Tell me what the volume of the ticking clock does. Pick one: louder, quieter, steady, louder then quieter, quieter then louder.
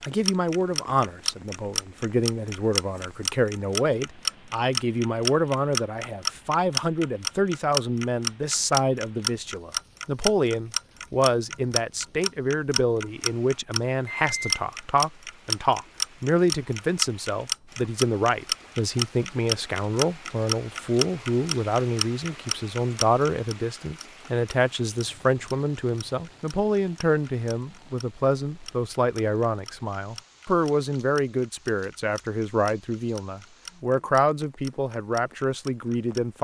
quieter.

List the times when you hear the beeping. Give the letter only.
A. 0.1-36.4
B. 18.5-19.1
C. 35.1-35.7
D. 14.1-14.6
D.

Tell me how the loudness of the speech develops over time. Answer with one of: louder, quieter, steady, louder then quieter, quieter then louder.
steady.